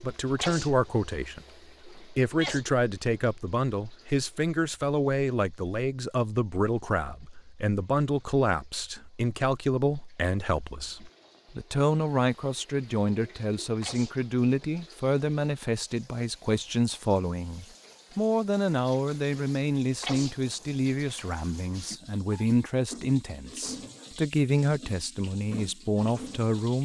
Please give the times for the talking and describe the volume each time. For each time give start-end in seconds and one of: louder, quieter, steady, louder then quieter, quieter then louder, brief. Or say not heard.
0.0-26.8 steady.